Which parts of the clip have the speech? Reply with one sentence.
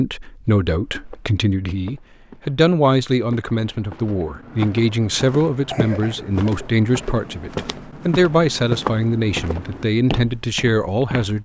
The speech can be heard from 0.0 to 11.4 s.